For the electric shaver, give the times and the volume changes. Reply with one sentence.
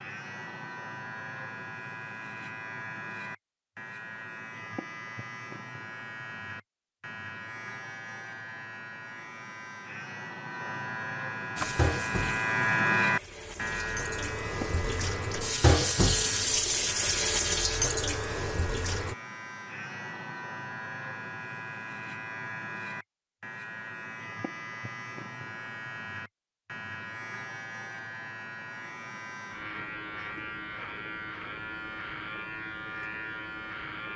The electric shaver can be heard from 0.0 to 34.1 s, getting louder then quieter.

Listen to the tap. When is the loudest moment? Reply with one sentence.
The volume of the tap peaks at 16 seconds.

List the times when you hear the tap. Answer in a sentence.
You can hear the tap from 11.6 to 19.1 s.